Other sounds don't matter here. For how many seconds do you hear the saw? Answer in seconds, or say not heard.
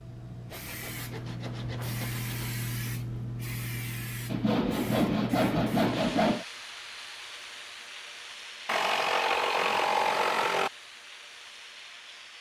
6 s.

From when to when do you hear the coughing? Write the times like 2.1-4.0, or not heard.
not heard.